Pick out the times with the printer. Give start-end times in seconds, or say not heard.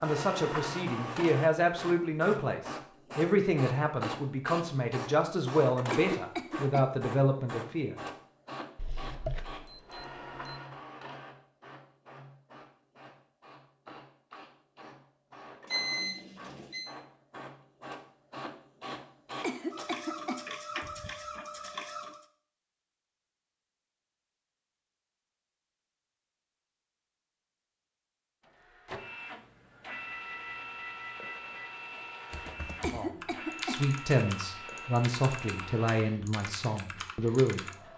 0.0-22.2, 28.4-37.9.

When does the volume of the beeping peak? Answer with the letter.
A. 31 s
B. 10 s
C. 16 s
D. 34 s
C.